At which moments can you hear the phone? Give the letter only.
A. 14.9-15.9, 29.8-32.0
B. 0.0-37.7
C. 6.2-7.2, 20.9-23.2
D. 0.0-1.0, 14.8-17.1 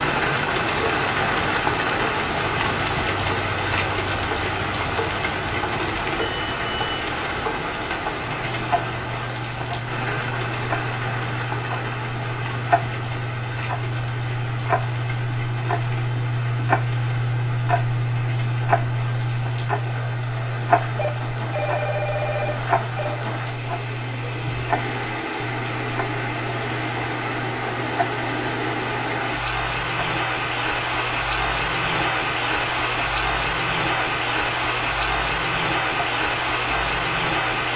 C.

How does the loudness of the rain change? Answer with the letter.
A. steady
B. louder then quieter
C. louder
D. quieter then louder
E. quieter
D.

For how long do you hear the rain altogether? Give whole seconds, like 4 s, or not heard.
38 s.